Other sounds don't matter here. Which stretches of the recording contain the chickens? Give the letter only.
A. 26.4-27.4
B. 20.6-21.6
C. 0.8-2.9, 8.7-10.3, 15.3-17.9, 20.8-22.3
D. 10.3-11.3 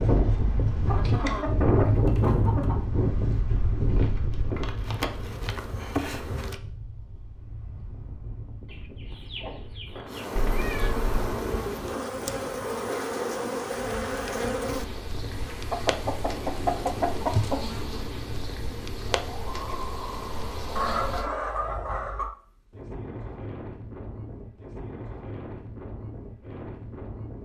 C.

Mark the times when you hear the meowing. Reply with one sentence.
You can hear the meowing from 10.3 to 11.3 s.